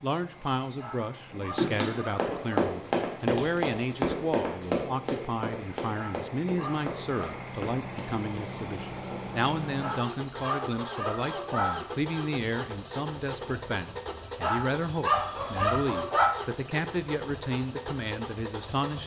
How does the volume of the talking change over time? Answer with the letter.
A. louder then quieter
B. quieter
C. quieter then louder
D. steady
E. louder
D.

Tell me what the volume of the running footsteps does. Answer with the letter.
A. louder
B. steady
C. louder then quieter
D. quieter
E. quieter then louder
D.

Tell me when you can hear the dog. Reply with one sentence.
You can hear the dog from 0.8 to 2.6 s, from 5.9 to 7.5 s, from 9.8 to 11.8 s and from 14.4 to 16.4 s.